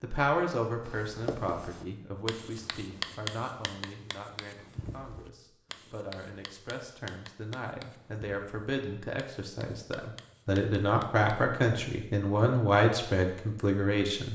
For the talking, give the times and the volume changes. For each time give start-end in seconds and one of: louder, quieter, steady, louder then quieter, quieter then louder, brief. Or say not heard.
0.0-14.2 quieter then louder.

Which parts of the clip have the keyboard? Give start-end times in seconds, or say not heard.
not heard.